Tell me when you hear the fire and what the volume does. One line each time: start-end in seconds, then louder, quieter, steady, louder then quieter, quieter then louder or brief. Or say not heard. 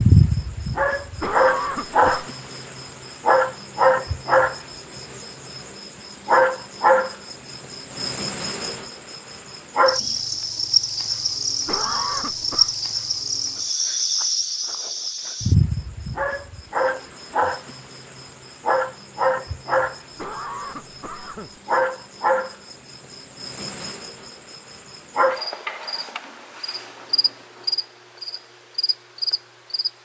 not heard.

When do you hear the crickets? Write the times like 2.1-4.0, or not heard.
0.0-29.9.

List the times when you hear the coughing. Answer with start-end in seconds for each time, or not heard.
1.2-2.3, 11.7-12.7, 20.1-21.6.